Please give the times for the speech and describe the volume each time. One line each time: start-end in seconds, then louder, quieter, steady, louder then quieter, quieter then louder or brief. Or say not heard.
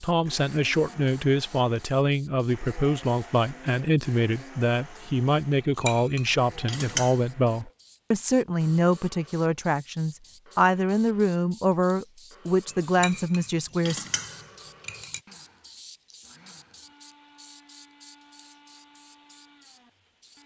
0.0-14.1 steady.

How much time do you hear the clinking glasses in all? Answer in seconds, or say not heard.
4 s.